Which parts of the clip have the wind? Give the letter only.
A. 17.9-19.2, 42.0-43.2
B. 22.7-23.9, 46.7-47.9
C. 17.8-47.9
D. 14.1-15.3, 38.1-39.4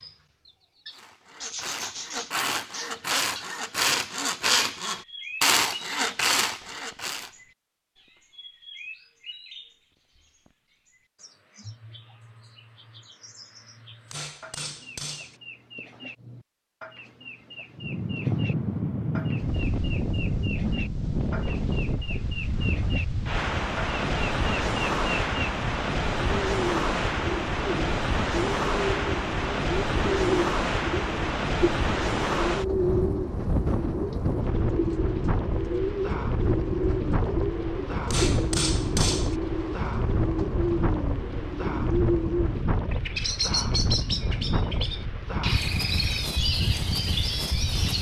C.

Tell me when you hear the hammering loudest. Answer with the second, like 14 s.
39 s.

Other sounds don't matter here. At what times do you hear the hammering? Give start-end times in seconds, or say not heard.
14.1-15.3, 38.1-39.4.